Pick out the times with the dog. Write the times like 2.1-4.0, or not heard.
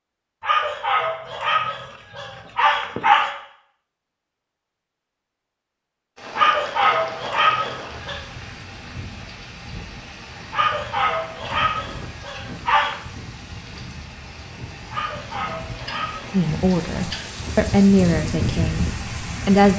0.4-3.4, 6.3-8.2, 10.5-12.9, 14.9-16.4.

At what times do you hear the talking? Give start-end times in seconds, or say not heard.
16.3-19.7.